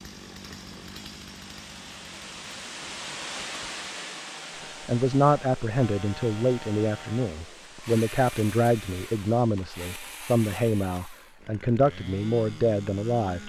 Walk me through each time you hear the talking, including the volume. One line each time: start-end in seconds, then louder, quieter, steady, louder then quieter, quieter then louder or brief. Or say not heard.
4.8-13.4 steady.